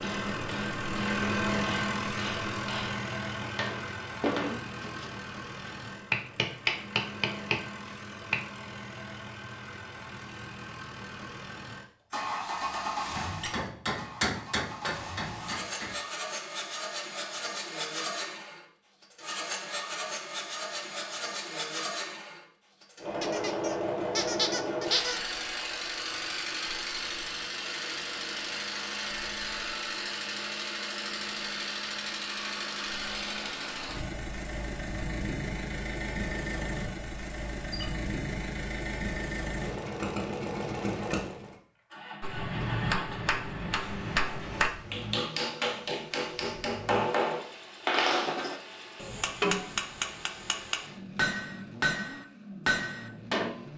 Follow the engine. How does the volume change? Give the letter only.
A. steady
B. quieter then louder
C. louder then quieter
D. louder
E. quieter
E.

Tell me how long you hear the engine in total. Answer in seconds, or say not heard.
54 s.